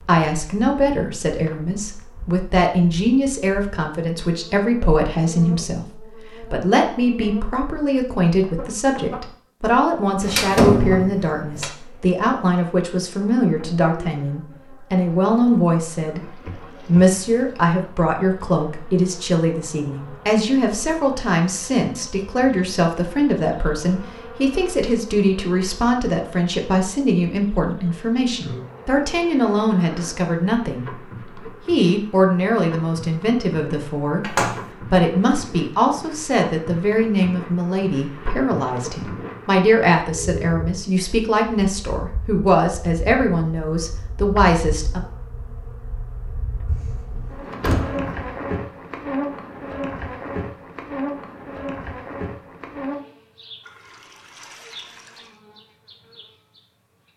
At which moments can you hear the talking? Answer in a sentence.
You can hear the talking from 0.1 to 16.2 s and from 16.9 to 45.0 s.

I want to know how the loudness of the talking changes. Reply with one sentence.
The volume of the talking stays about the same.